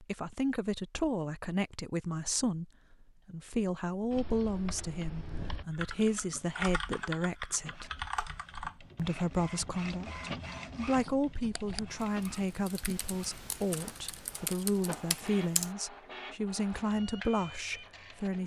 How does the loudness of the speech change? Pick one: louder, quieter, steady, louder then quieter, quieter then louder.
steady.